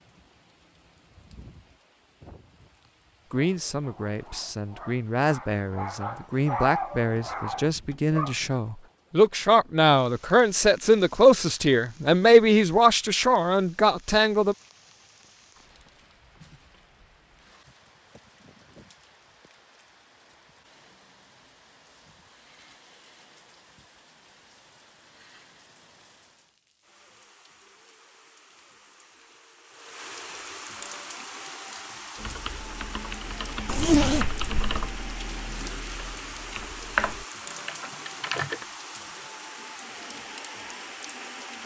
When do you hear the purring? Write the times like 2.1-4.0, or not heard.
not heard.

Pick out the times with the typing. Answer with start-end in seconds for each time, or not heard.
32.1-38.6.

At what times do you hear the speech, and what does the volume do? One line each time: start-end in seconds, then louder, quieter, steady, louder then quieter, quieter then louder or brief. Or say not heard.
3.3-14.6 louder.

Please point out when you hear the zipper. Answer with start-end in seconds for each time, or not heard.
33.6-34.9.